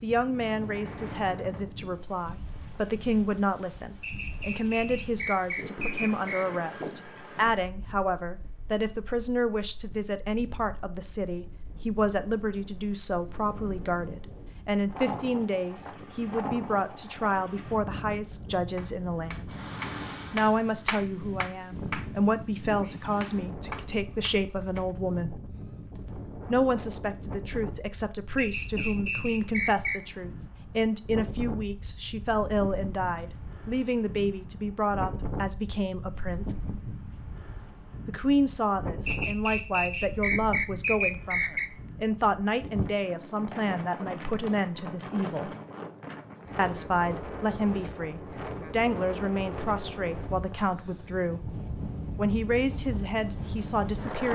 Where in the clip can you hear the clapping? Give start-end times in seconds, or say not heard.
18.8-24.9.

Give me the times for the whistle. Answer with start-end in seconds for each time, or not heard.
4.0-6.6, 28.4-30.0, 39.0-41.7.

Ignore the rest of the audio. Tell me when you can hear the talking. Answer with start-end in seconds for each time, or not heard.
0.0-19.6, 20.3-25.4, 26.5-36.5, 38.0-45.5, 46.5-51.5, 52.1-54.3.